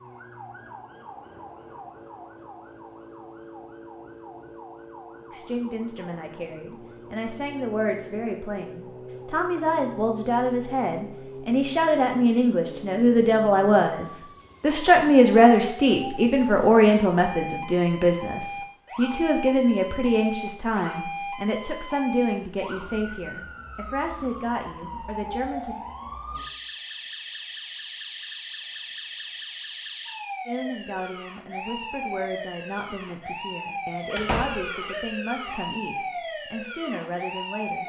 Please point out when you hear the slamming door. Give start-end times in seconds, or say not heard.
34.1-34.7.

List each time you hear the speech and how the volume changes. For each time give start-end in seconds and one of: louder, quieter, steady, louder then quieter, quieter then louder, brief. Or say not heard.
5.3-25.8 louder then quieter
30.4-37.8 steady.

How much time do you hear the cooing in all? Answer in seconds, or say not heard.
not heard.